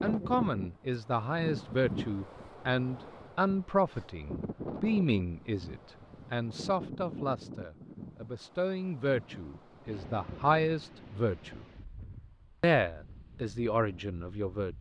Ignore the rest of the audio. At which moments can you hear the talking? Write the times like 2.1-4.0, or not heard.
0.0-11.6, 12.6-14.7.